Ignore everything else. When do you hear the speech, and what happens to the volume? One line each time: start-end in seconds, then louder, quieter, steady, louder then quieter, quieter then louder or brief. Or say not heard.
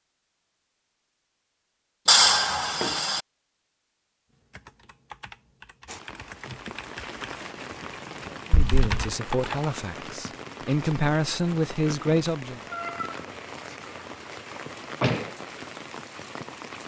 8.5-12.6 louder.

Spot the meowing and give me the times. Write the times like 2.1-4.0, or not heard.
2.0-3.2, 8.5-8.9, 12.7-13.2.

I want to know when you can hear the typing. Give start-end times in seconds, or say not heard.
4.3-9.8.